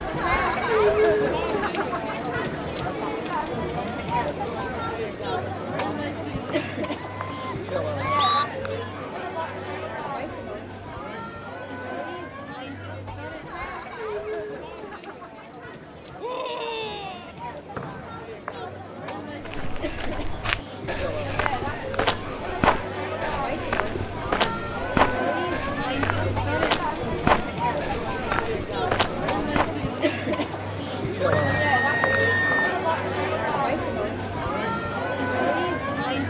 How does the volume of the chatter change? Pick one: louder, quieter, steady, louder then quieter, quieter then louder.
quieter then louder.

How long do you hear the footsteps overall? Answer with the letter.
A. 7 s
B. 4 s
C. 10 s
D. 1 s
C.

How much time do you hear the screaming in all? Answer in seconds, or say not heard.
4 s.